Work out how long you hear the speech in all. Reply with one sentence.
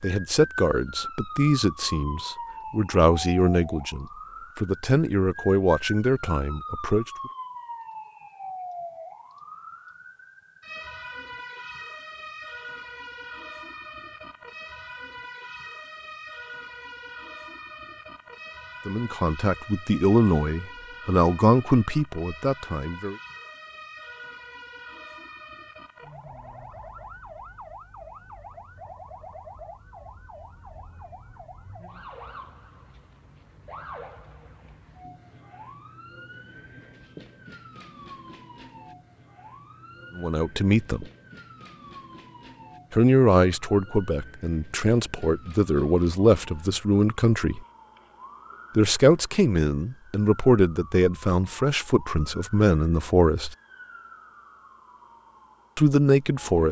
You can hear the speech for 23 seconds altogether.